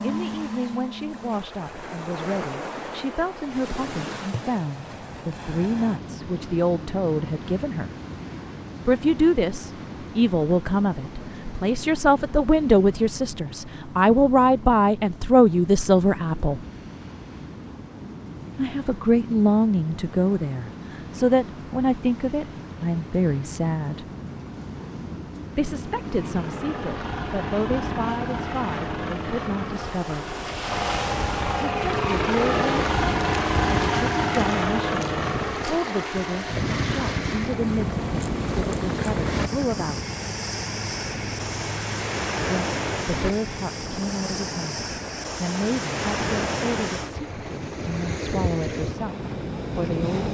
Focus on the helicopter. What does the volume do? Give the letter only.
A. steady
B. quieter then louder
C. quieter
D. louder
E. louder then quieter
E.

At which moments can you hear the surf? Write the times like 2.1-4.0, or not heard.
0.0-50.2.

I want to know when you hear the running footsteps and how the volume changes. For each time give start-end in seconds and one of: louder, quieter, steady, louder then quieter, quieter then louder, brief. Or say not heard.
not heard.